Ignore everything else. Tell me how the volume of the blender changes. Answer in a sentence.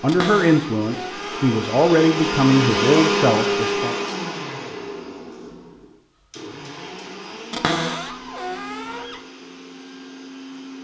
The volume of the blender goes up, then down.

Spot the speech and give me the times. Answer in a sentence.
You can hear the speech from 0.0 to 4.0 s.